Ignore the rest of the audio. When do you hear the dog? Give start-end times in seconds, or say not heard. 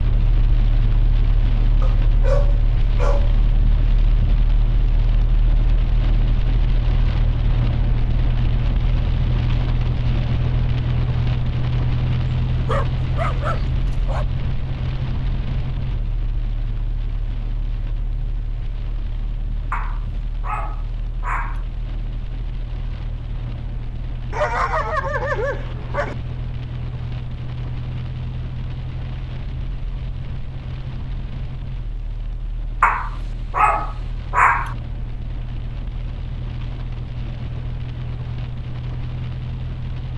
1.8-3.4, 12.7-14.2, 19.7-21.6, 24.3-26.1, 32.8-34.8.